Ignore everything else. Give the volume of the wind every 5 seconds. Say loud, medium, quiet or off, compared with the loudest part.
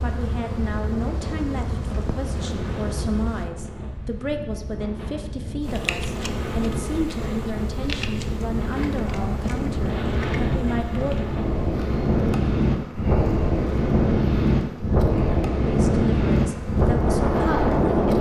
quiet, medium, loud, loud.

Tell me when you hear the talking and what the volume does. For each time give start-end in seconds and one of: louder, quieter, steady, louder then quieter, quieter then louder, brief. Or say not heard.
0.0-11.3 steady
15.6-18.1 brief.